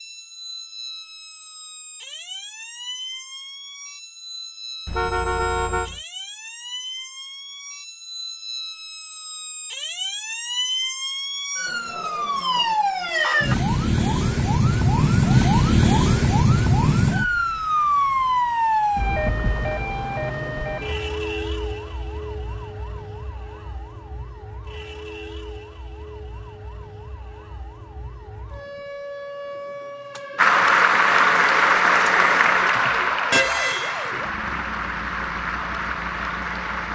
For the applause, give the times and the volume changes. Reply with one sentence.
The applause can be heard from 30.4 to 36.9 s, getting quieter.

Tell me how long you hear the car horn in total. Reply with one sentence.
You can hear the car horn for 2 seconds altogether.